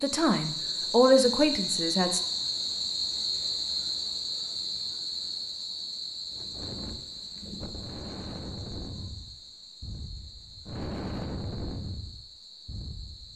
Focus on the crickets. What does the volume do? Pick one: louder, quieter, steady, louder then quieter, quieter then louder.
quieter.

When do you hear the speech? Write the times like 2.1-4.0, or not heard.
0.0-2.2.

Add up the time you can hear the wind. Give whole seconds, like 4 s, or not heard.
7 s.